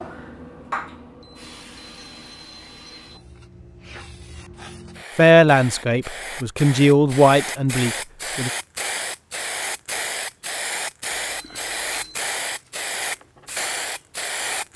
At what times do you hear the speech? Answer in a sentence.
The speech can be heard from 5.2 to 8.5 s.